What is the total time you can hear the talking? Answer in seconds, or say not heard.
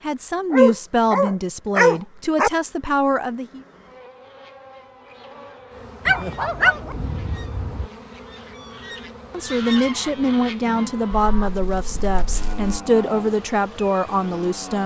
9 s.